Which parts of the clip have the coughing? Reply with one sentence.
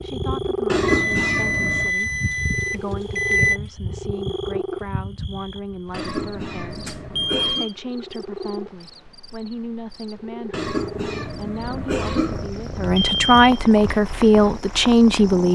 The coughing can be heard from 0.7 to 1.9 s, from 5.9 to 7.7 s and from 10.5 to 12.5 s.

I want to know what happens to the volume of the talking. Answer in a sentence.
The loudness of the talking goes up.